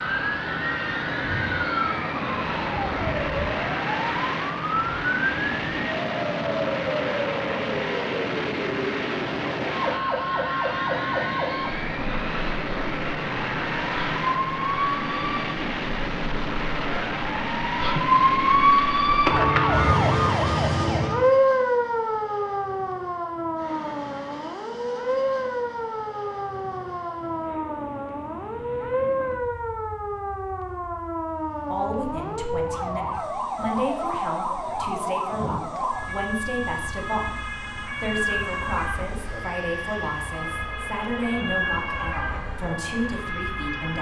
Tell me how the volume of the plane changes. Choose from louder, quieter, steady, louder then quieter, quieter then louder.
quieter.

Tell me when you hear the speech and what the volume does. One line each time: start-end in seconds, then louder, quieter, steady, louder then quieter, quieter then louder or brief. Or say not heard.
31.7-43.9 steady.